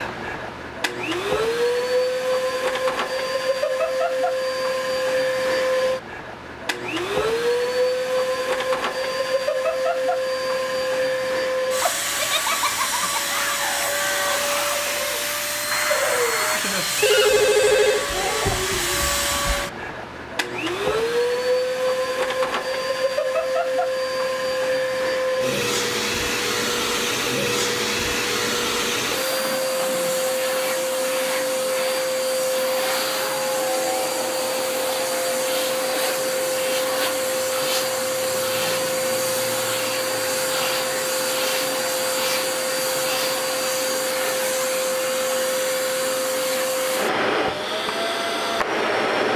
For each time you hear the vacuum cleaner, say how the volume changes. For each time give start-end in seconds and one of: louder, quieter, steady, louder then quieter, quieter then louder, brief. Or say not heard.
0.0-49.3 steady.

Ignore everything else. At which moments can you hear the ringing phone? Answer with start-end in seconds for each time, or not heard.
17.0-18.1.